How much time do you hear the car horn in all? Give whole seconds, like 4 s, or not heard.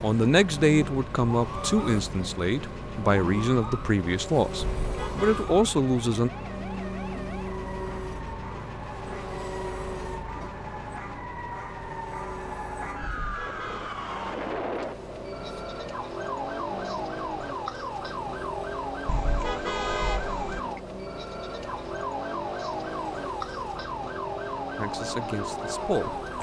3 s.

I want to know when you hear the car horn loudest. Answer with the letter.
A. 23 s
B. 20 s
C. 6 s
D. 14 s
B.